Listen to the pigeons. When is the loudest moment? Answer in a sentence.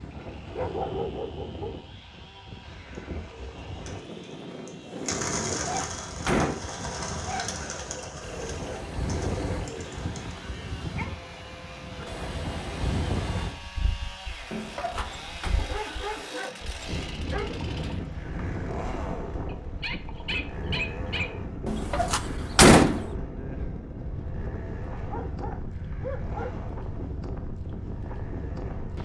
The volume of the pigeons peaks at 5 seconds.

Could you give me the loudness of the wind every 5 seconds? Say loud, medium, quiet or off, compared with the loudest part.
medium, loud, loud, loud, loud, loud.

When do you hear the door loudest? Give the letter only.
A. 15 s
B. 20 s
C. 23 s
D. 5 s
C.